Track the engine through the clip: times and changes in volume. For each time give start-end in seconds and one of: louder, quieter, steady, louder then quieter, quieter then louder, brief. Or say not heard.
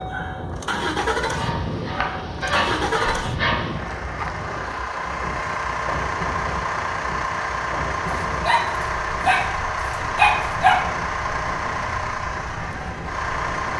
0.0-13.7 steady.